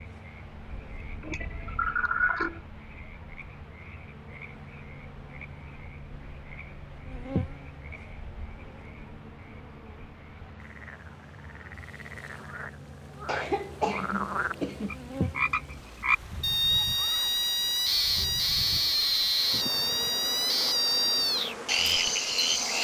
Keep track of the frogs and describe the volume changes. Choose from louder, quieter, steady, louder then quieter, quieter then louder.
louder.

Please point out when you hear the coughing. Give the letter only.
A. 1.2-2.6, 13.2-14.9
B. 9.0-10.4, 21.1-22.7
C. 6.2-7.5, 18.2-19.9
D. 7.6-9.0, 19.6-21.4
A.